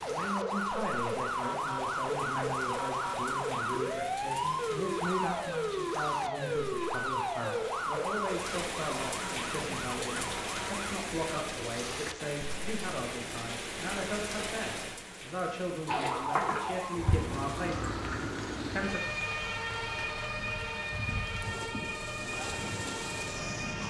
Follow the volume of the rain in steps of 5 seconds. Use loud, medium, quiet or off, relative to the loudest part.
medium, loud, loud, medium, loud.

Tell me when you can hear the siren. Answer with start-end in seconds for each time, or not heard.
0.0-10.9, 15.8-23.8.